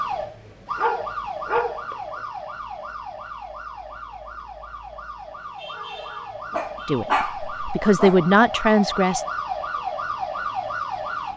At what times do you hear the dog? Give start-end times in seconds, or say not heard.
0.8-1.9, 6.5-8.2.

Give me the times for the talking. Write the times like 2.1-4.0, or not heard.
6.8-9.2.